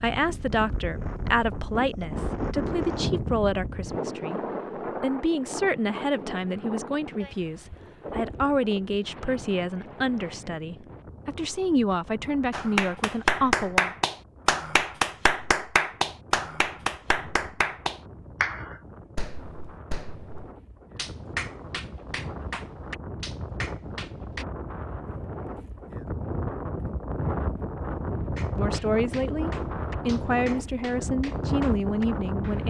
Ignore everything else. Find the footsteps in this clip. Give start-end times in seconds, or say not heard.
not heard.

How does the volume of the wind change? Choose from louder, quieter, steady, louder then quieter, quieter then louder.
quieter then louder.